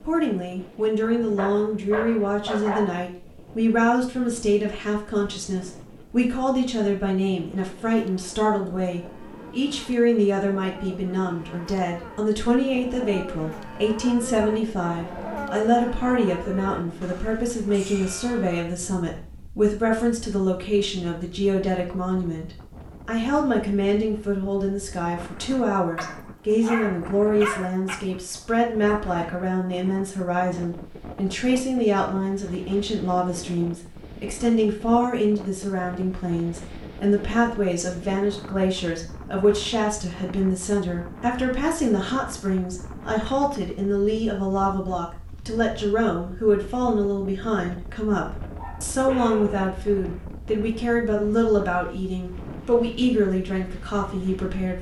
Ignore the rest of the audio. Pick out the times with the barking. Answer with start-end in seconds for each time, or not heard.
1.0-3.0, 25.9-27.9, 48.3-50.2.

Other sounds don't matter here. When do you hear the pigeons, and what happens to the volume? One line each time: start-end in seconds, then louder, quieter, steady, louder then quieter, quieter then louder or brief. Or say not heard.
not heard.